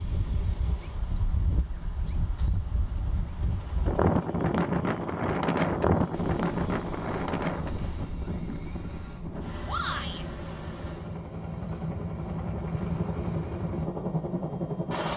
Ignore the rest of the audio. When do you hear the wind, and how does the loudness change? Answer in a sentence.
The wind can be heard from 0.0 to 11.2 s, getting louder then quieter.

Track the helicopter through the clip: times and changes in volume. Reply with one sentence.
You can hear the helicopter from 0.0 to 15.1 s, getting louder.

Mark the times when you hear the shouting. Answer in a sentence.
The shouting can be heard from 9.7 to 10.2 s.